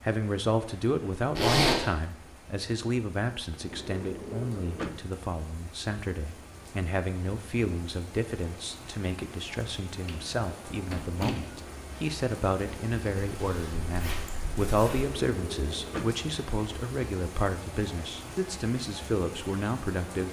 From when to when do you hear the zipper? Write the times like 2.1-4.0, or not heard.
1.4-1.9, 13.3-15.1.